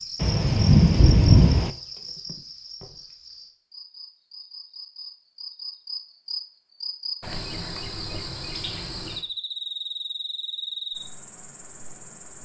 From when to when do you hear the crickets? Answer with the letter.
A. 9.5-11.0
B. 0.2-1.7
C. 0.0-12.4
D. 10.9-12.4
C.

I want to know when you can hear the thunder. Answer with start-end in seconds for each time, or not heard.
0.2-1.7.